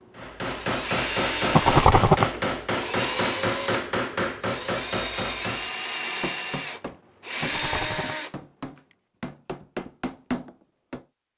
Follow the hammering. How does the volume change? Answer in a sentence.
The volume of the hammering goes down, then up.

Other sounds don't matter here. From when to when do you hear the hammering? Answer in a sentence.
You can hear the hammering from 0.1 to 11.0 s.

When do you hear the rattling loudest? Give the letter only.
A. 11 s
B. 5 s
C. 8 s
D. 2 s
D.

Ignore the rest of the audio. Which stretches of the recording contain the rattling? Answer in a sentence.
The rattling can be heard from 1.5 to 2.3 s and from 7.4 to 8.2 s.